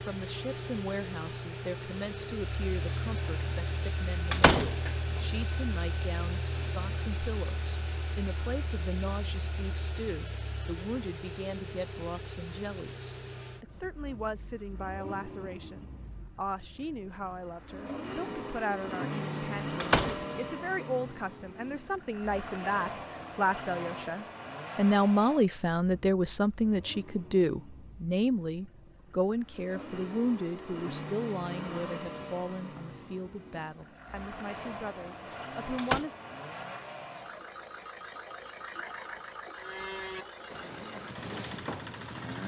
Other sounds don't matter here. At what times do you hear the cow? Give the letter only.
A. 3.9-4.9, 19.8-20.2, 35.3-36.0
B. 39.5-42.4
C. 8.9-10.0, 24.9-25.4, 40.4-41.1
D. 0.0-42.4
B.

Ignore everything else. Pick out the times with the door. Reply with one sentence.
The door can be heard from 3.9 to 4.9 s, from 19.8 to 20.2 s and from 35.3 to 36.0 s.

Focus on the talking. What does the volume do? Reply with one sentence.
The volume of the talking goes up, then down.